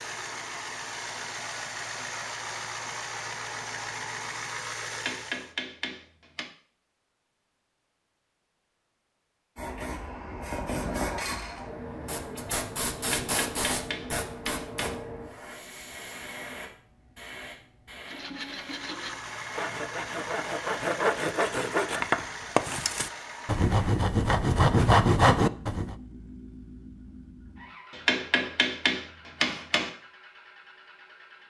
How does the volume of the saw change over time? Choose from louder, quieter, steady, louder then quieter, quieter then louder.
louder.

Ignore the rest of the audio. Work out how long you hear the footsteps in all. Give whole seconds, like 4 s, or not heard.
not heard.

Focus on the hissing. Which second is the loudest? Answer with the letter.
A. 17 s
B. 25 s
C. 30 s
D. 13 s
D.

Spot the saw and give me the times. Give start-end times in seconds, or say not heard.
18.1-25.9.